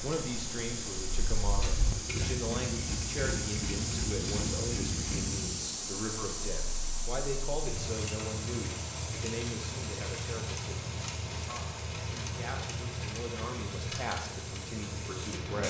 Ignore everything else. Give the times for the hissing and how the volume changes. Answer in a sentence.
You can hear the hissing from 0.0 to 15.6 s, getting quieter.